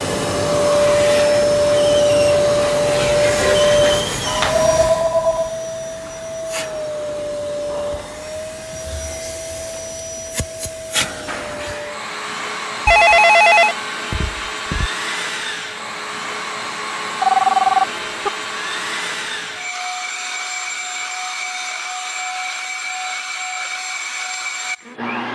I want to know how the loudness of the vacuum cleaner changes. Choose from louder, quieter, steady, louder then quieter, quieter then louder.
quieter.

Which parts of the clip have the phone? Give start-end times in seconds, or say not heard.
3.4-5.5, 12.8-14.9, 17.2-18.3.